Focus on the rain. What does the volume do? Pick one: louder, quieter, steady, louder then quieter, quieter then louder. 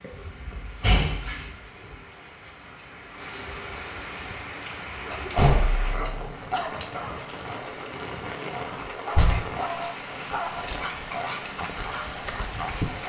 louder.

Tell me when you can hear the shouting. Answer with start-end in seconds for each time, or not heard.
not heard.